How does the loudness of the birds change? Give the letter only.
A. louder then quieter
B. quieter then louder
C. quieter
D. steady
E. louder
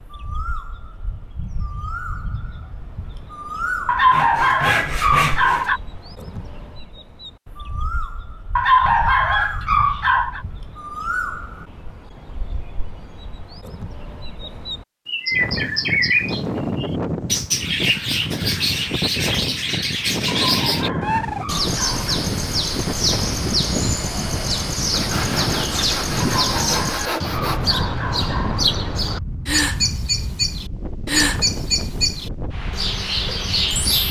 E.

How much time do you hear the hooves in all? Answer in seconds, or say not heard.
not heard.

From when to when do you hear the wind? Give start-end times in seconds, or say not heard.
15.3-34.0.